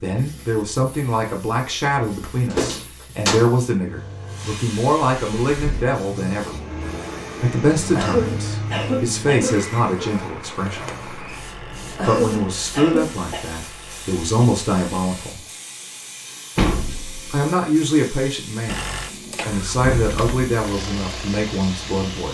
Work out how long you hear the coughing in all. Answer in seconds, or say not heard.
3 s.